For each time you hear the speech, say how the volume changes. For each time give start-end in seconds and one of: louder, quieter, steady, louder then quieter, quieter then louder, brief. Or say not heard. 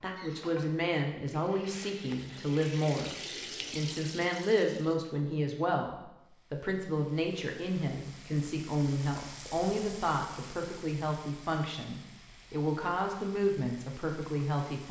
0.0-14.8 steady.